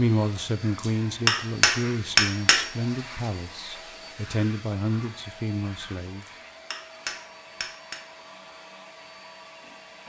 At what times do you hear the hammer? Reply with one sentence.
You can hear the hammer from 0.8 to 2.6 s and from 6.2 to 8.0 s.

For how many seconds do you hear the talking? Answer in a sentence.
You can hear the talking for 6 seconds altogether.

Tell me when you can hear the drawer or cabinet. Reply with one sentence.
The drawer or cabinet can't be heard in this clip.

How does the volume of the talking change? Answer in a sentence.
The loudness of the talking stays about the same.